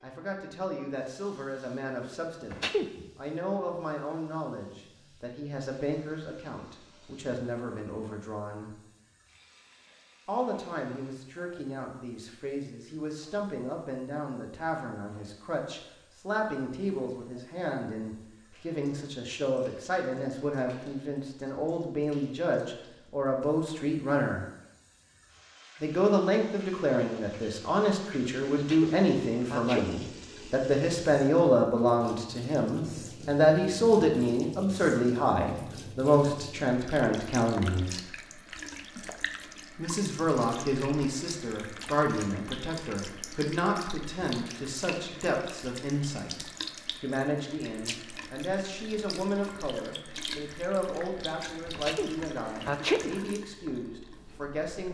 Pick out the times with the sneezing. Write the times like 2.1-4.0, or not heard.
2.5-3.0, 28.6-29.9, 51.8-53.1.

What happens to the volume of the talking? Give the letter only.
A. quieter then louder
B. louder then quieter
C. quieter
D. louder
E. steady
B.